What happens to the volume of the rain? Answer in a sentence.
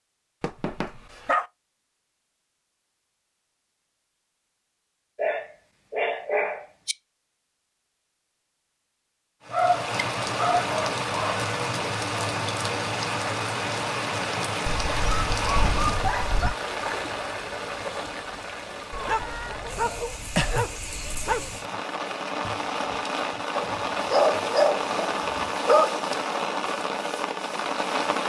The loudness of the rain goes down, then up.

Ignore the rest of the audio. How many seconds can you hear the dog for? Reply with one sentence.
You can hear the dog for 12 seconds altogether.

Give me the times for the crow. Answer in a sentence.
You can't hear the crow here.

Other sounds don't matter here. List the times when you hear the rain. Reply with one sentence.
The rain can be heard from 9.4 to 28.2 s.